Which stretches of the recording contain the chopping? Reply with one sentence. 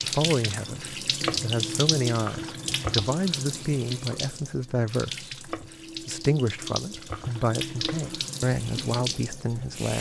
The chopping can be heard from 1.2 to 3.1 s and from 5.5 to 8.2 s.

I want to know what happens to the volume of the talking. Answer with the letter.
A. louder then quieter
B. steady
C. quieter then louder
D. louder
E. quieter
B.